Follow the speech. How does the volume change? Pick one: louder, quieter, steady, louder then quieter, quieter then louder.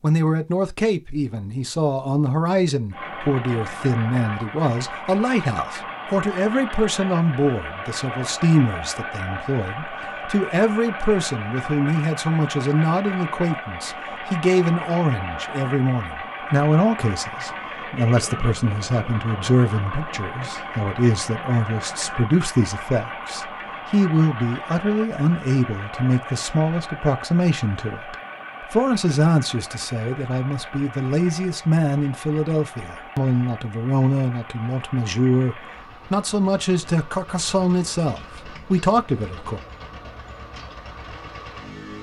steady.